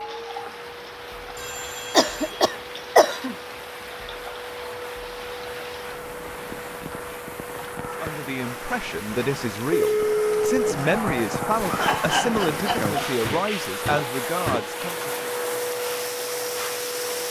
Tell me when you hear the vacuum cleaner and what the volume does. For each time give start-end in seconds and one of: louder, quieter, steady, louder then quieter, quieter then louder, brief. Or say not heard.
0.0-17.2 louder.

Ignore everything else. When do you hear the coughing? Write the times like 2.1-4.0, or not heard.
1.9-3.4, 10.7-12.9.